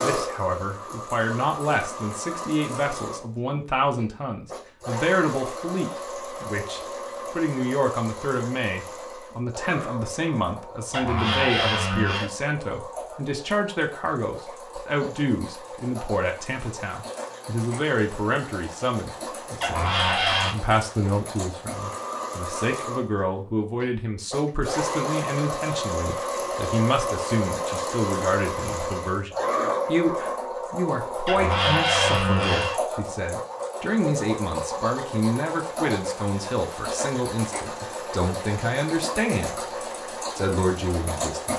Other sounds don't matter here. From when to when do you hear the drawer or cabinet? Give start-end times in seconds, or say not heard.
10.9-12.3, 19.6-20.6, 31.2-32.8.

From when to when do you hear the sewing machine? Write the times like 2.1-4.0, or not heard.
0.0-41.5.